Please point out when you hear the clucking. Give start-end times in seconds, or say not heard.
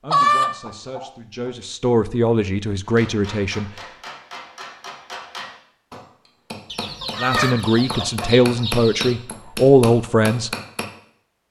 0.1-1.1, 6.7-9.2.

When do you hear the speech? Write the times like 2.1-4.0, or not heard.
0.0-3.7, 7.2-10.5.